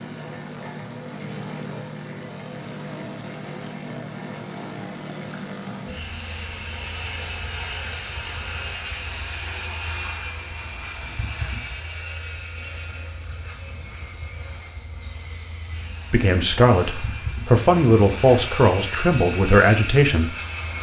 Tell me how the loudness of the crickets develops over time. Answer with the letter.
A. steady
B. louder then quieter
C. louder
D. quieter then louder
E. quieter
A.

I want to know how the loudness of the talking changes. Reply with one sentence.
The loudness of the talking stays about the same.